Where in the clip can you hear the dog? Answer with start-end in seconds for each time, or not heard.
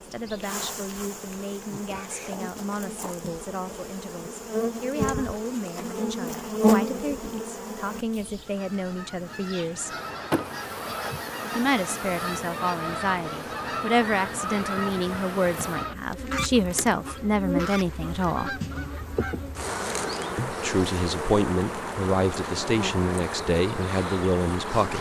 not heard.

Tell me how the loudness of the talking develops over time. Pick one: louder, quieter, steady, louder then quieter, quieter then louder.
louder.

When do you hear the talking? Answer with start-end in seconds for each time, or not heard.
0.0-9.9, 11.6-18.6, 20.4-24.9.